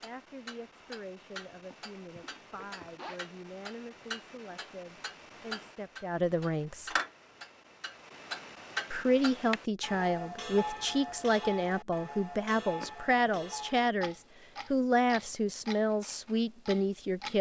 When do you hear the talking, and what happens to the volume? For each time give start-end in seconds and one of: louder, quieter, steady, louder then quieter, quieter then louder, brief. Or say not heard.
0.0-6.9 louder
8.9-17.3 steady.